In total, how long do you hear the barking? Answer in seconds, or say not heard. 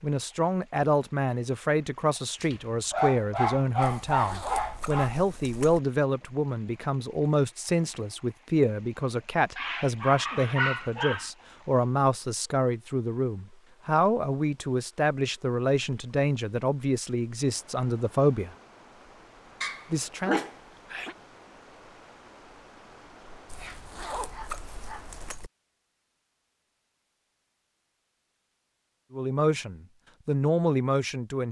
8 s.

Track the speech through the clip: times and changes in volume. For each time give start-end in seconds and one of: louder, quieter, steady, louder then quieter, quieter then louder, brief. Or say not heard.
0.0-18.5 steady
19.9-20.4 brief
29.1-31.4 brief.